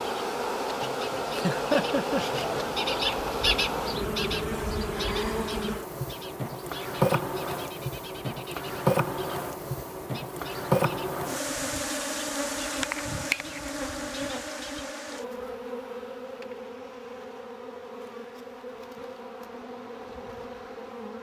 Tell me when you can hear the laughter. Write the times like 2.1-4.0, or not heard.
1.4-2.2.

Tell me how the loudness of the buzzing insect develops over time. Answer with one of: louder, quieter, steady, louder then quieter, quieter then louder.
quieter.